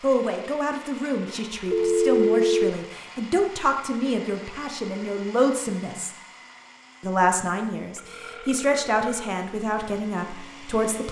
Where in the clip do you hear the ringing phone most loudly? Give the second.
2 s.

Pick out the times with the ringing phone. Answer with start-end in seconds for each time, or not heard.
1.7-2.8, 8.0-9.3.